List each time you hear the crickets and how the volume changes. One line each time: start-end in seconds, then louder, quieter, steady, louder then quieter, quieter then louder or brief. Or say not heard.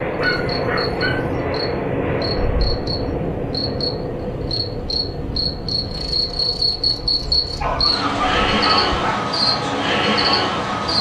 0.1-10.9 louder.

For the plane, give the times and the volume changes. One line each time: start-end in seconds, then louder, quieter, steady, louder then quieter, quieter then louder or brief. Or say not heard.
0.0-10.9 quieter.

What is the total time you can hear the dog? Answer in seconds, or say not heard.
3 s.